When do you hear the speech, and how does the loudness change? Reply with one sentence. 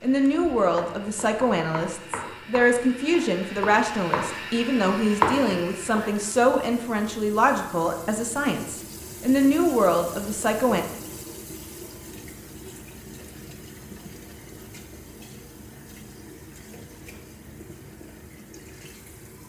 The speech can be heard from 0.0 to 10.8 s, at a steady volume.